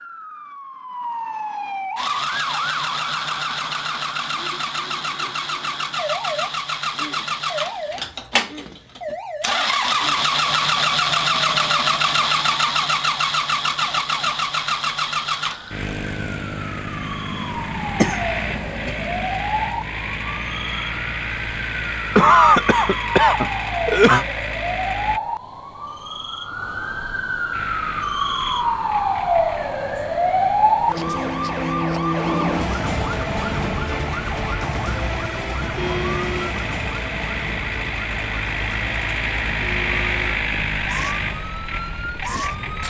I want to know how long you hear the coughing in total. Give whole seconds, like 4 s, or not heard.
4 s.